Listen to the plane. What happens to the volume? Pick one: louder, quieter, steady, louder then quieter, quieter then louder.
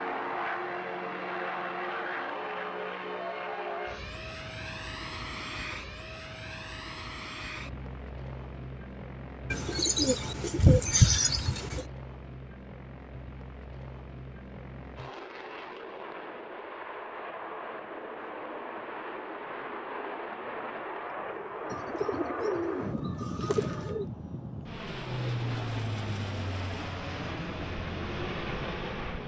quieter then louder.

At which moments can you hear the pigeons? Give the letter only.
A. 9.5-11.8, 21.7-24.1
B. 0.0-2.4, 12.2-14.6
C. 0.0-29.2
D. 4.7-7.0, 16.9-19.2
A.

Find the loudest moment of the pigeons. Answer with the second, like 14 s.
11 s.